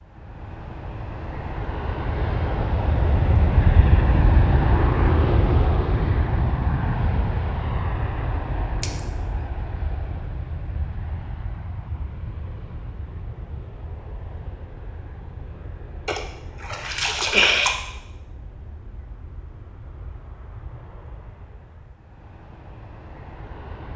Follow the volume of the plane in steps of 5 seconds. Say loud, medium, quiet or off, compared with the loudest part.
loud, loud, quiet, quiet, quiet.